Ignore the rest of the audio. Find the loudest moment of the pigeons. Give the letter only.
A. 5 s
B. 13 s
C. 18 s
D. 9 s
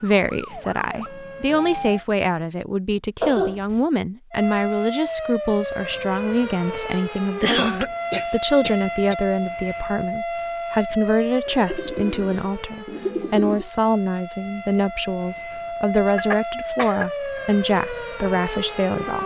B.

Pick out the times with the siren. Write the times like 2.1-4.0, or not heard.
0.2-2.0, 4.3-19.2.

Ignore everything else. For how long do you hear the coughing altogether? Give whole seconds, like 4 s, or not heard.
3 s.